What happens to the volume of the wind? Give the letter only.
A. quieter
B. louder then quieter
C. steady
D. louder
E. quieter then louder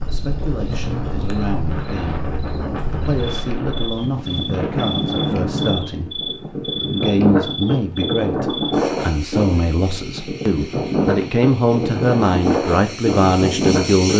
D.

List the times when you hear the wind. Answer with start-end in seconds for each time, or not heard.
0.0-14.1.